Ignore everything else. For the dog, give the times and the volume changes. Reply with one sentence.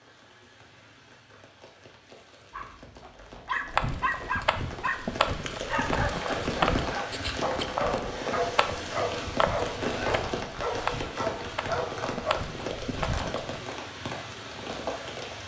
The dog can be heard from 2.5 to 12.3 s, at a steady volume.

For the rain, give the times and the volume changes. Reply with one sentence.
You can hear the rain from 0.0 to 15.4 s, getting louder.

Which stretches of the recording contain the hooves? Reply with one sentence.
The hooves can be heard from 3.6 to 13.6 s.